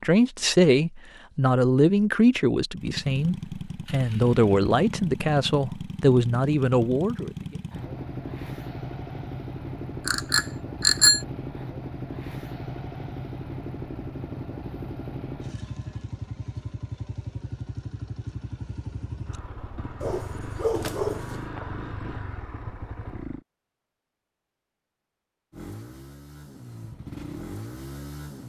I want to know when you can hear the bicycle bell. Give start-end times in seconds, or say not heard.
10.1-11.2.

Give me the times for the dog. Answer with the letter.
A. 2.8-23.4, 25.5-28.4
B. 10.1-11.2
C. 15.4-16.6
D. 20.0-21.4
D.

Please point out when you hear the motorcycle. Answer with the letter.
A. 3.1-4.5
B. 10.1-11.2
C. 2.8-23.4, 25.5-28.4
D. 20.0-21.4
C.